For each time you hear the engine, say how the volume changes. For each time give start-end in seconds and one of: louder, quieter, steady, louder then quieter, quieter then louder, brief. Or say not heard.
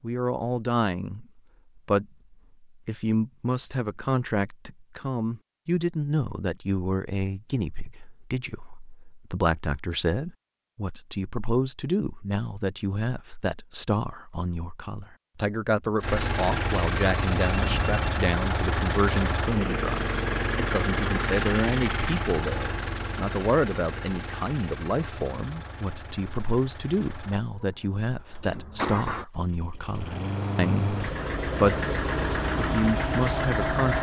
16.0-33.9 quieter then louder.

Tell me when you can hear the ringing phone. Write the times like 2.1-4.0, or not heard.
17.4-18.2.